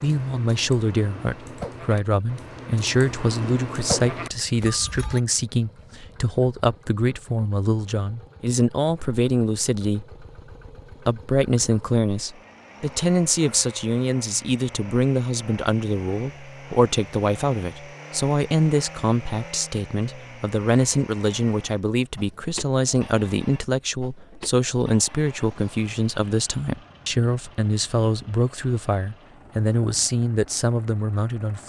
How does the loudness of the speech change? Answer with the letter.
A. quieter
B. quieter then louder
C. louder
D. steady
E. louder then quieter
D.